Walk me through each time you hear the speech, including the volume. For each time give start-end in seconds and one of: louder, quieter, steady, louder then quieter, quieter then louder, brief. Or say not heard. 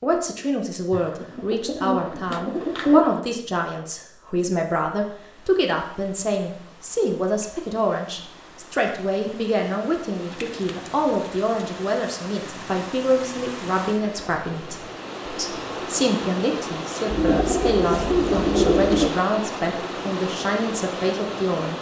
0.0-21.7 steady.